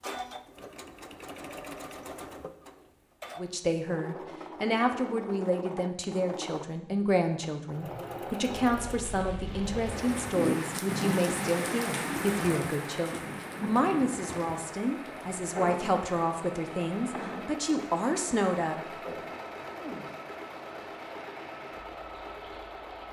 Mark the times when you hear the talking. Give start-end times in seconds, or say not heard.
3.4-18.8.